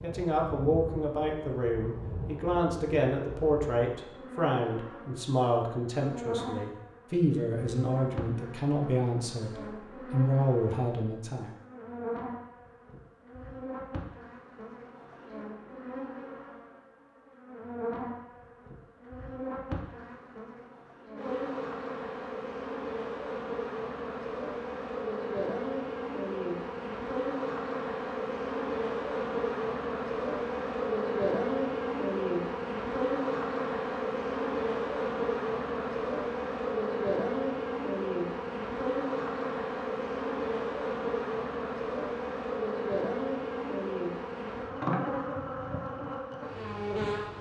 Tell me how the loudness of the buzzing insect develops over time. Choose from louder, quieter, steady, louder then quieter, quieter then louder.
louder.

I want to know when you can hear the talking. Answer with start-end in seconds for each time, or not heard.
0.0-11.5.